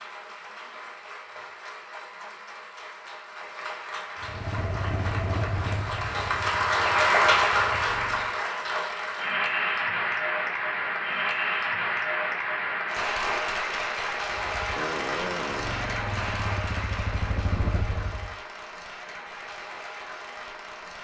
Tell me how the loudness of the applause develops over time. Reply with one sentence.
The loudness of the applause goes up, then down.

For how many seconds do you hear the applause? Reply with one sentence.
You can hear the applause for 21 seconds altogether.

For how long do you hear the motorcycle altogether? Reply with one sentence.
You can hear the motorcycle for 8 seconds altogether.